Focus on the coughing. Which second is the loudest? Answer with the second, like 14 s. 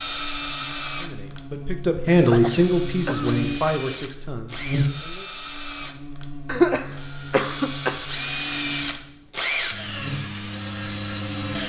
7 s.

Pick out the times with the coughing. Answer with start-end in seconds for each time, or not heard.
2.2-3.4, 6.5-8.1.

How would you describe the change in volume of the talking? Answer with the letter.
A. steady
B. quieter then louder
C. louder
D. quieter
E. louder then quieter
E.